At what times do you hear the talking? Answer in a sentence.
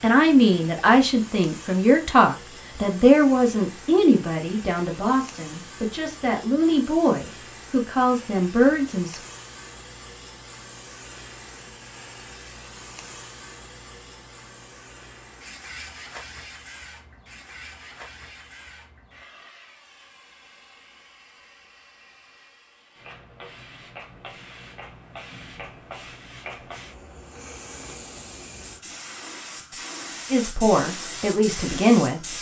The talking can be heard from 0.0 to 9.2 s and from 30.3 to 32.3 s.